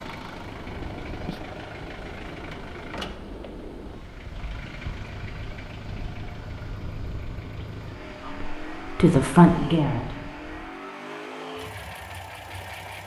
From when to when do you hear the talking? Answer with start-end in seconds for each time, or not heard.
8.2-10.2.